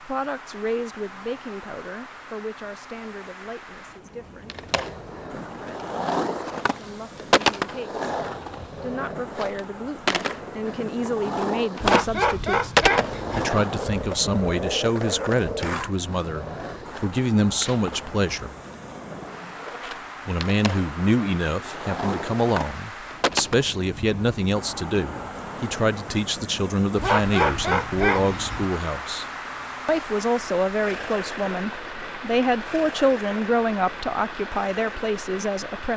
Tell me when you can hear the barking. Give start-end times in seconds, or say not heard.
11.8-13.5, 26.9-28.6.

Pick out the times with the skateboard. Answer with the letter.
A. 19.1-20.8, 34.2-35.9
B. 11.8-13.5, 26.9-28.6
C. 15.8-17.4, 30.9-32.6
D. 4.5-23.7
D.